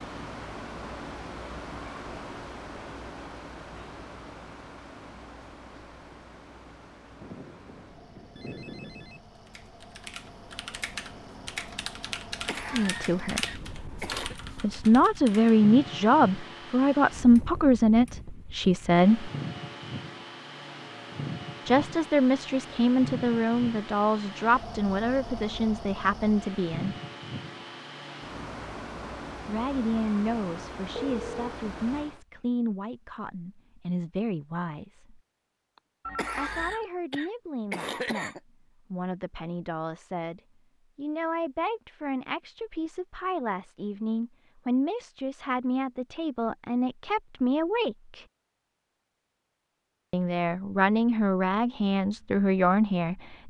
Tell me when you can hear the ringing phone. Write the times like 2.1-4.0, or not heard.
7.2-9.2, 30.9-31.6, 36.0-36.9.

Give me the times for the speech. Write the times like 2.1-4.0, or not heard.
12.7-13.4, 14.6-19.3, 21.6-26.9, 29.4-35.2, 36.4-48.2, 50.1-53.4.